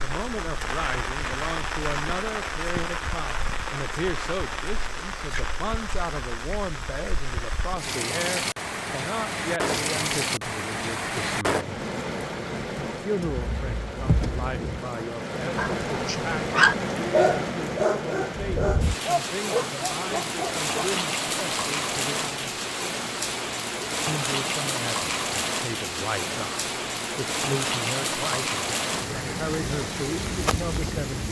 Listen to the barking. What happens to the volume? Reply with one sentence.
The loudness of the barking goes down.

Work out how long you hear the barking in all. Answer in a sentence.
You can hear the barking for 5 seconds altogether.